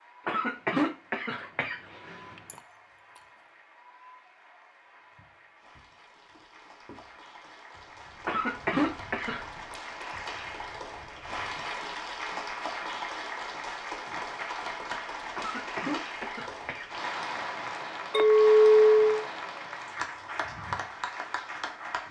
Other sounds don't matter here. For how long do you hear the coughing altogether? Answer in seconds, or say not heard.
6 s.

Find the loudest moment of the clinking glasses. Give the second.
19 s.